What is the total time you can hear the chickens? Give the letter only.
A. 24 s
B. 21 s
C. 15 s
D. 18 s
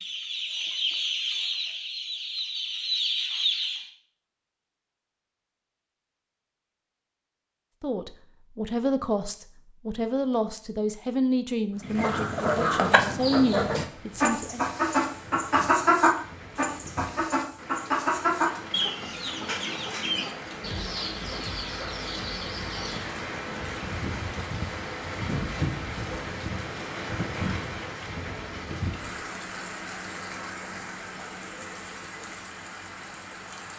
C.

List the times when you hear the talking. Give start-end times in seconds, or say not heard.
7.8-14.7.